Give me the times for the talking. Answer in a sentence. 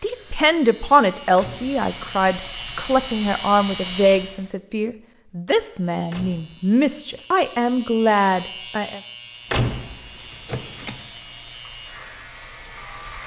You can hear the talking from 0.0 to 9.0 s.